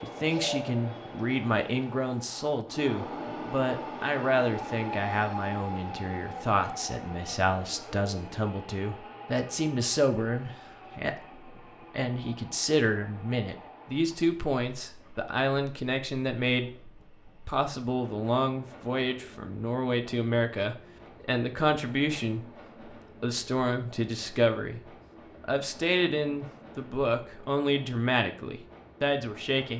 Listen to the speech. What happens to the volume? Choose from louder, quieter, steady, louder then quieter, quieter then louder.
steady.